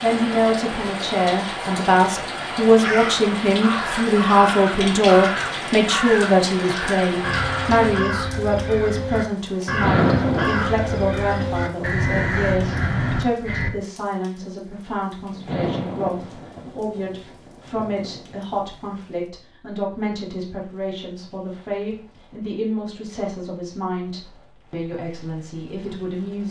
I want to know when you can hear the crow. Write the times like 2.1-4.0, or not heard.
2.7-13.7.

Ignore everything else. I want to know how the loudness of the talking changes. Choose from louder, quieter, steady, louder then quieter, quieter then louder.
quieter.